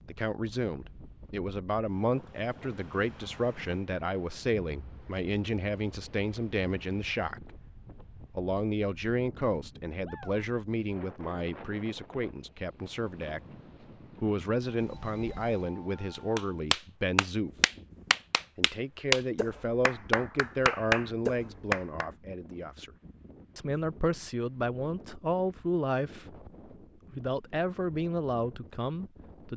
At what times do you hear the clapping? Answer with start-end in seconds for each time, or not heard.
16.1-22.1.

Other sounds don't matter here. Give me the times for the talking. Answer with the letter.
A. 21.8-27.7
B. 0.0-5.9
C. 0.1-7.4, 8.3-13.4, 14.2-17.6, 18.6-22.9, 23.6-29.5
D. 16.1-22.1
C.